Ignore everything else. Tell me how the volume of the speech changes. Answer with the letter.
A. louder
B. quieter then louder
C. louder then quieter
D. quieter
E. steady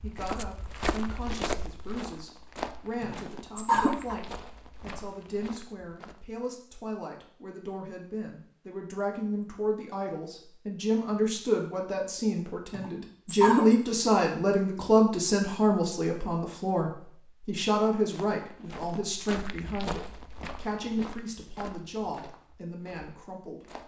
C.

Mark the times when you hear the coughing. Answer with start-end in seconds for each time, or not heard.
3.0-4.2, 12.8-13.8.